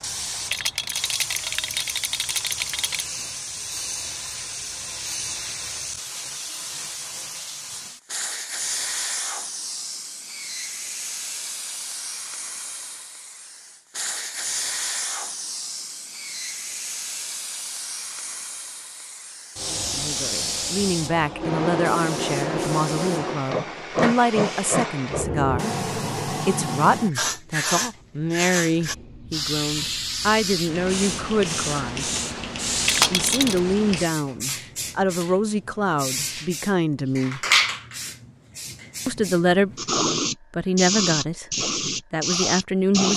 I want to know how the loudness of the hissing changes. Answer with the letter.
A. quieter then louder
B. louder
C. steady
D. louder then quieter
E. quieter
B.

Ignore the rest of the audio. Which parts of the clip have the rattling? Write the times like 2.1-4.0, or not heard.
0.5-3.0, 32.9-33.6.